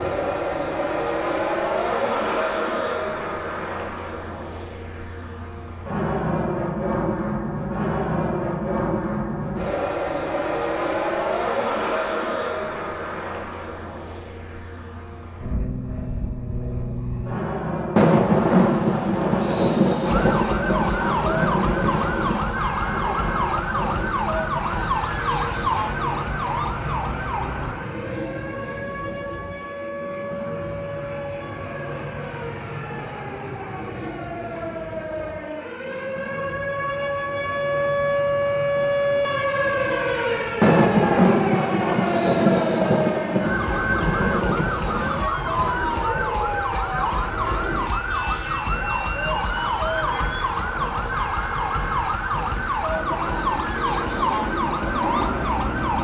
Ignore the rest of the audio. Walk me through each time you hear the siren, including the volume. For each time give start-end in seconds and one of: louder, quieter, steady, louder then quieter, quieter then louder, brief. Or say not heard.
20.0-55.9 quieter then louder.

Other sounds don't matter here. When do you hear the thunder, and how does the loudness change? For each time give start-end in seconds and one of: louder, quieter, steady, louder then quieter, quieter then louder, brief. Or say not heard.
17.9-22.4 quieter
40.6-45.3 quieter.